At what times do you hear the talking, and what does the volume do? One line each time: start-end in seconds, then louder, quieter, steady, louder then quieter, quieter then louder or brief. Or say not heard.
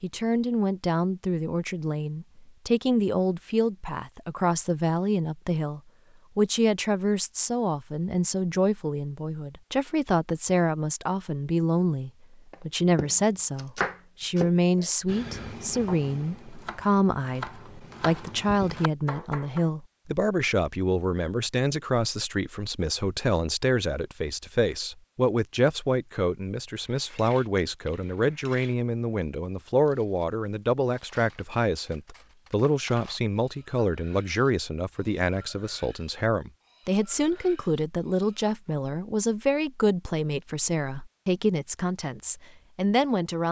0.0-43.4 steady.